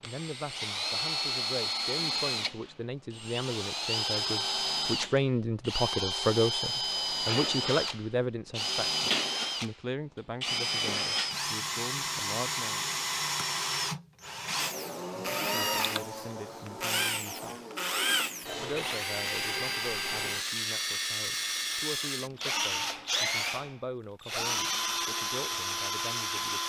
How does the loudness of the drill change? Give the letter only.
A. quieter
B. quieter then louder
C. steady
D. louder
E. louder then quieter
C.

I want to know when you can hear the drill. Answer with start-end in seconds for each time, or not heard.
0.0-26.6.